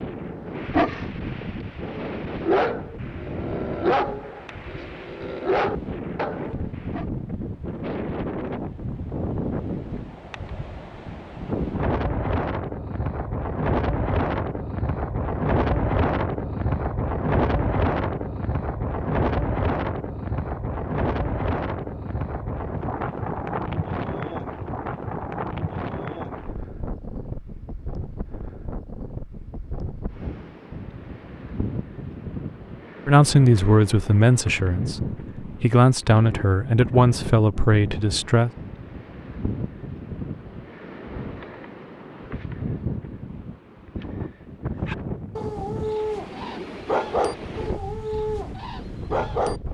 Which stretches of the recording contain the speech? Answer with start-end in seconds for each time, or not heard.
33.0-38.5.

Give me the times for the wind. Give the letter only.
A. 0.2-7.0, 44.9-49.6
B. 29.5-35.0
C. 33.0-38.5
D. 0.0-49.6
D.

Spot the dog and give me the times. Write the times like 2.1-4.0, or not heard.
0.2-7.0, 44.9-49.6.